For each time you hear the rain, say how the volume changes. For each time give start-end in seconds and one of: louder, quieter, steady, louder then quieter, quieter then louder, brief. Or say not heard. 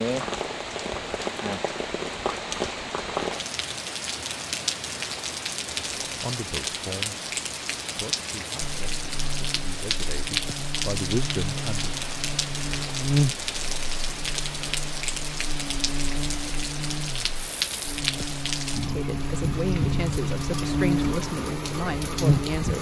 0.0-22.7 steady.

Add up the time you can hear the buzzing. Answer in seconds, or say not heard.
14 s.